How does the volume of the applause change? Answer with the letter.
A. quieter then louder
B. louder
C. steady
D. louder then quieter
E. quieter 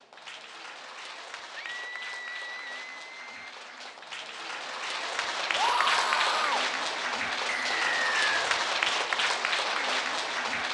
B.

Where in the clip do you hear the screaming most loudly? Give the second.
6 s.